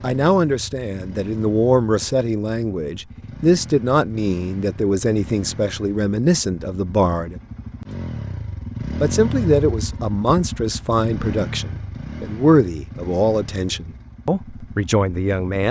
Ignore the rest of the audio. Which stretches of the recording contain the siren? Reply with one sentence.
The siren can't be heard in this clip.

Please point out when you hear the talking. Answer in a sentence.
The talking can be heard from 0.0 to 7.3 s and from 9.0 to 15.6 s.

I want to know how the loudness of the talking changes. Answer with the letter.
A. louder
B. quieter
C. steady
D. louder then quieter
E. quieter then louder
C.